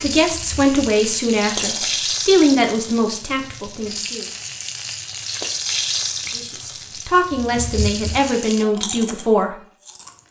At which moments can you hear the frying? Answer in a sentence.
The frying can be heard from 0.0 to 8.7 s.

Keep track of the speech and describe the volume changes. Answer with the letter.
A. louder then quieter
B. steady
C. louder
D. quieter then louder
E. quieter
D.